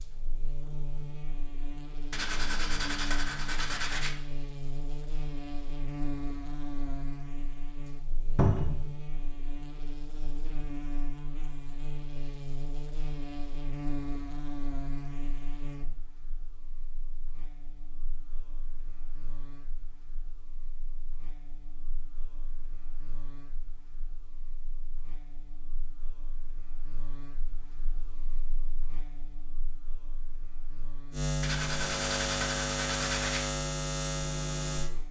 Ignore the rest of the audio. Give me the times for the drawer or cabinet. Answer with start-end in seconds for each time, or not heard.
8.3-8.8.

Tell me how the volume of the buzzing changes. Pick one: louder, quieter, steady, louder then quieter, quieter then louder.
quieter then louder.